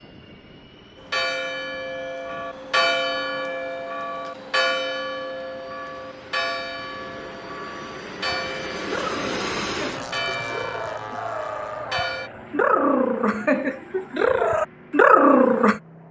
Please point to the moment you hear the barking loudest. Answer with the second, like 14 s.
15 s.